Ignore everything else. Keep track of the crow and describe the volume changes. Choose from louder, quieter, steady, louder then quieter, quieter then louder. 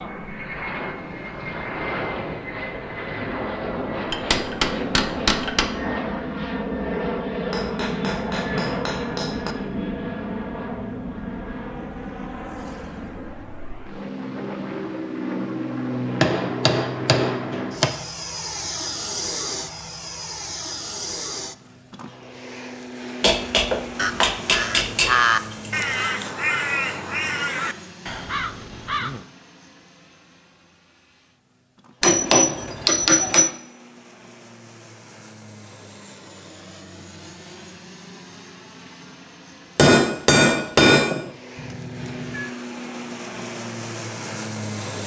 quieter.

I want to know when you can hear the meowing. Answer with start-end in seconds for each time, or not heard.
41.5-42.5.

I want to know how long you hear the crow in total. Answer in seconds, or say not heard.
5 s.